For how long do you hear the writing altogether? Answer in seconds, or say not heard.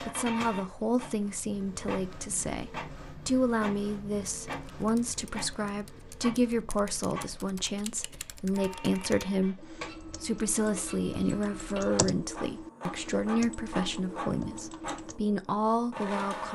not heard.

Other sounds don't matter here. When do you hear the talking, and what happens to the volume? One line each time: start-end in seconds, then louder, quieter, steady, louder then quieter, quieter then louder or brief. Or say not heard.
0.0-16.4 steady.